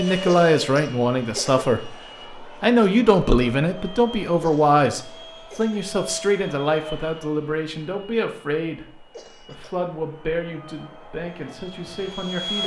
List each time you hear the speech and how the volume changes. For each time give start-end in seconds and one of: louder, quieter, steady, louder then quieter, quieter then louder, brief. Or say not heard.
0.0-12.6 quieter.